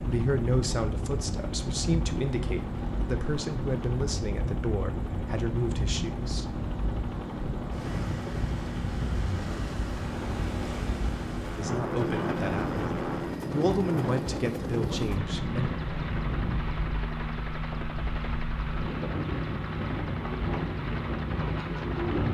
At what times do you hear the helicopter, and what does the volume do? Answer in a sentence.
The helicopter can be heard from 0.0 to 22.2 s, at a steady volume.